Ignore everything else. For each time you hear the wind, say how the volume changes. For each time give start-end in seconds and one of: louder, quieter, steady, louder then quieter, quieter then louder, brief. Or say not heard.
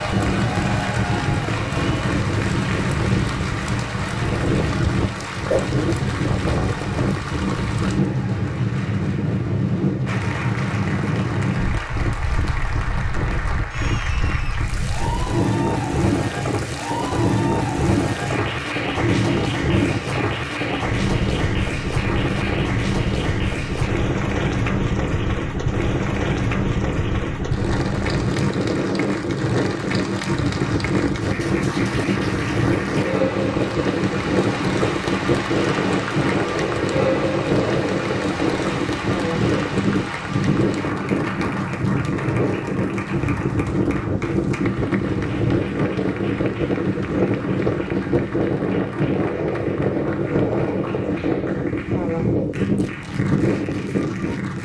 0.0-54.5 steady.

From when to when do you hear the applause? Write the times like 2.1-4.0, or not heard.
0.0-54.5.